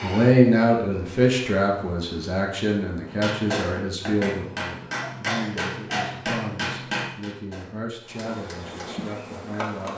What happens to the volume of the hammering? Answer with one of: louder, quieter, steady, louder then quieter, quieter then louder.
quieter.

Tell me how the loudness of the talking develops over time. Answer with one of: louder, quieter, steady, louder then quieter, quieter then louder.
quieter.